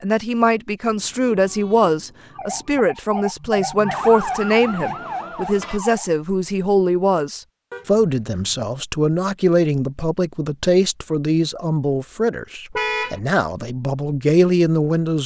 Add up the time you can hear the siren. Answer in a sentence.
You can hear the siren for 4 seconds altogether.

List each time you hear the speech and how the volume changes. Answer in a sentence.
You can hear the speech from 0.0 to 15.2 s, at a steady volume.